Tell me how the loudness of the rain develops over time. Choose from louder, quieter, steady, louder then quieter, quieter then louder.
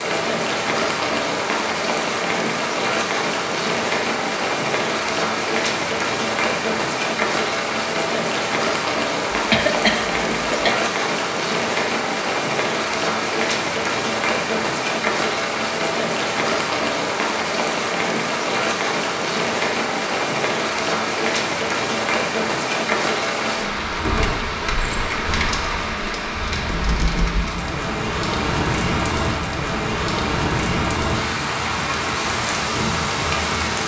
steady.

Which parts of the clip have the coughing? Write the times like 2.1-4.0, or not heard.
9.3-10.8.